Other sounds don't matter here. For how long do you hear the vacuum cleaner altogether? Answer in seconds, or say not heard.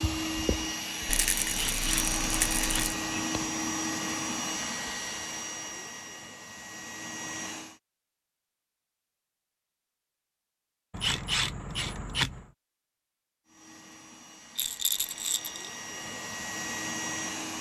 12 s.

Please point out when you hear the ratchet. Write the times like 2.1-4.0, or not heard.
1.5-3.1, 10.9-12.4.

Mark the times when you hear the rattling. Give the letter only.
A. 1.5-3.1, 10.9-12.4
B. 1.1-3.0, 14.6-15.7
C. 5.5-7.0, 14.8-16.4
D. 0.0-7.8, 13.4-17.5
B.